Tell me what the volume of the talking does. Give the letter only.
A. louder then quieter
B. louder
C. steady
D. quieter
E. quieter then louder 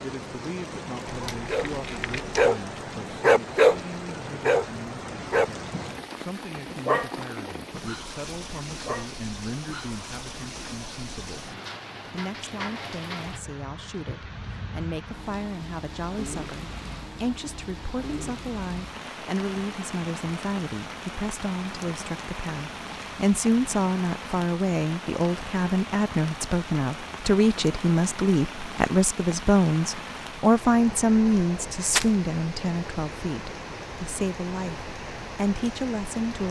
B.